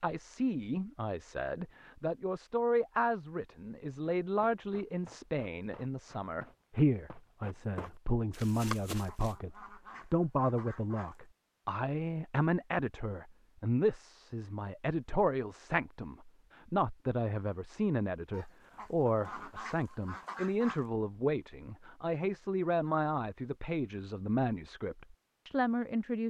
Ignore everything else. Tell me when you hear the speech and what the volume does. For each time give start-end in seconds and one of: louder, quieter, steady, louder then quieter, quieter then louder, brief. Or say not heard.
0.0-26.2 steady.